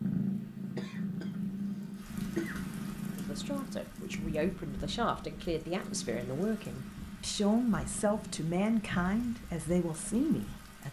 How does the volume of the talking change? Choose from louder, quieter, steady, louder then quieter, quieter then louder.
louder.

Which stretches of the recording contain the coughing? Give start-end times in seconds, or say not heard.
0.8-2.6.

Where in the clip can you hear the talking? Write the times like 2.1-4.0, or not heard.
3.1-10.8.